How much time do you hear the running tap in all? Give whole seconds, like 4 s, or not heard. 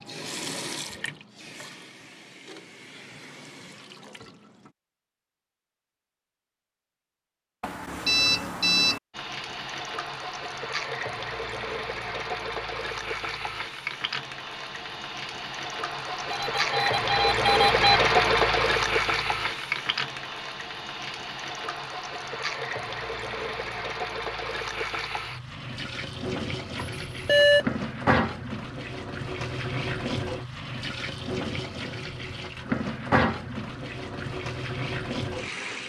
31 s.